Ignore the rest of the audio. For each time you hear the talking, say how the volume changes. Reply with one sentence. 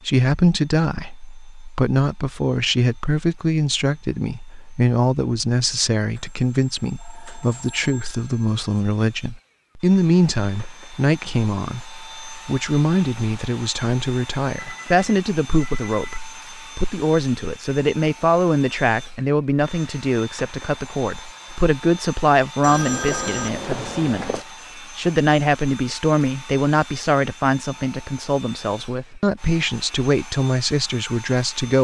The talking can be heard from 0.1 to 31.7 s, at a steady volume.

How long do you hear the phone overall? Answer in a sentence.
The phone can be heard for 6 seconds in total.